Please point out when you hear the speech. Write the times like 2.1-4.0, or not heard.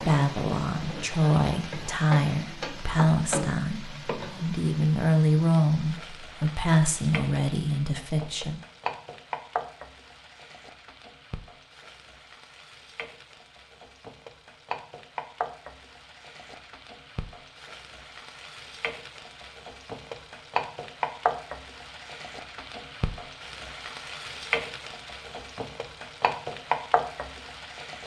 0.0-8.6.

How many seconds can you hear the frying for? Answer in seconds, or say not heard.
28 s.